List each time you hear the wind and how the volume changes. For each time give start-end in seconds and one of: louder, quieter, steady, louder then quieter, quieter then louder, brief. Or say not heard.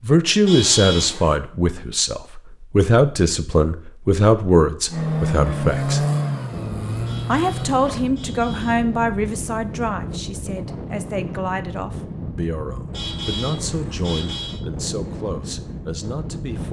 6.5-16.6 steady.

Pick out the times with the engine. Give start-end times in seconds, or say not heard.
4.8-8.0.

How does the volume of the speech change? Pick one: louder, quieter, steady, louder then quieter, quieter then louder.
quieter.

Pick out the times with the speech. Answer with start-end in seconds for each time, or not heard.
0.0-6.0, 7.2-16.6.